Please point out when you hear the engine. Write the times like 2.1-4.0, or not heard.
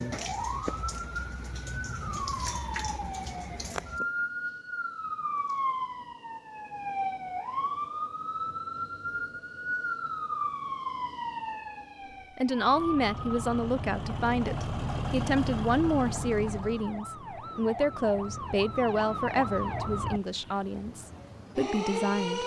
12.5-17.1.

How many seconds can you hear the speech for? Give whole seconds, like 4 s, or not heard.
10 s.